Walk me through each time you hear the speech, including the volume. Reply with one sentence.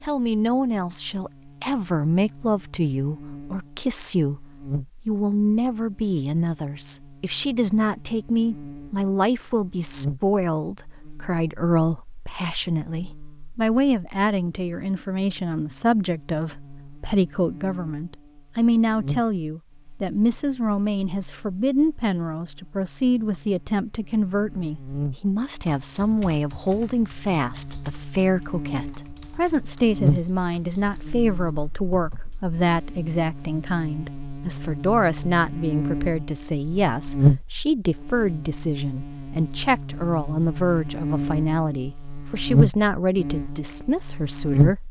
You can hear the speech from 0.0 to 44.8 s, at a steady volume.